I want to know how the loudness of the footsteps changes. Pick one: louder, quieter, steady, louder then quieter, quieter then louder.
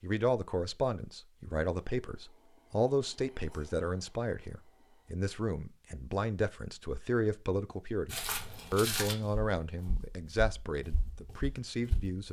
quieter.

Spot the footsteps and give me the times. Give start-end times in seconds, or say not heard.
8.1-12.2.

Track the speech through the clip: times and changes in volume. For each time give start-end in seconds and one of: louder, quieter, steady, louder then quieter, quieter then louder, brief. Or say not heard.
0.0-12.2 steady.